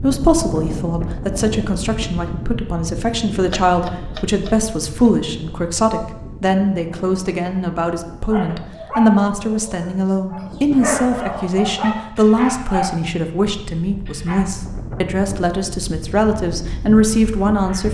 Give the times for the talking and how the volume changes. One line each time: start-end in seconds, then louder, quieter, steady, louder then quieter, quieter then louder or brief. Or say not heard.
0.0-17.8 steady.